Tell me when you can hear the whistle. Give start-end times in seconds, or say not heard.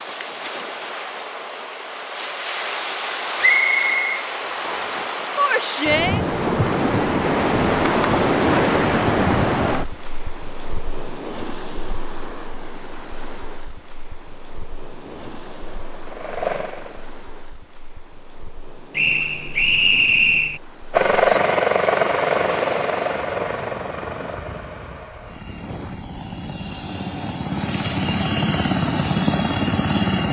3.4-5.0, 18.9-20.6.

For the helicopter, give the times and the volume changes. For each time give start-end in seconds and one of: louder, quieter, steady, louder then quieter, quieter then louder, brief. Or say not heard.
15.0-17.1 brief
20.9-30.2 quieter then louder.